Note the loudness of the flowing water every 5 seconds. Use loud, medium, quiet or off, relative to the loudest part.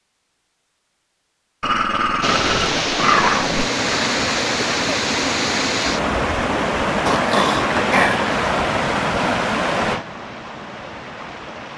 loud, loud, quiet.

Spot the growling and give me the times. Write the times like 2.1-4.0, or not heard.
1.6-3.7, 7.0-8.2.